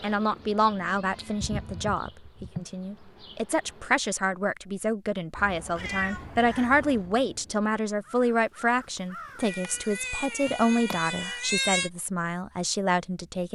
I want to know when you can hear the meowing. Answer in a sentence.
You can hear the meowing from 0.3 to 1.9 s, from 5.3 to 7.1 s and from 9.4 to 11.9 s.